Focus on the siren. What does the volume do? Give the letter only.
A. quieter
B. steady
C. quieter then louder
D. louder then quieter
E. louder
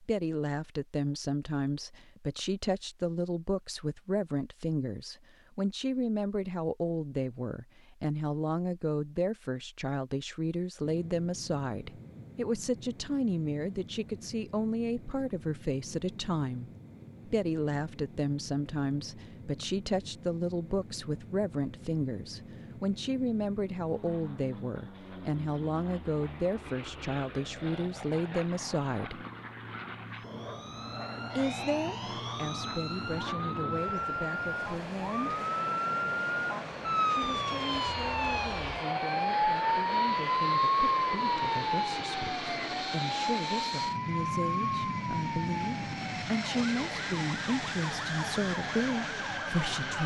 D.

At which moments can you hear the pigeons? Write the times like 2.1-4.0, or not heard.
not heard.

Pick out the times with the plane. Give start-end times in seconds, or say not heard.
10.8-50.0.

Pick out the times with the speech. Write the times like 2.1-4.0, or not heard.
0.0-29.2, 31.4-35.4, 37.0-50.0.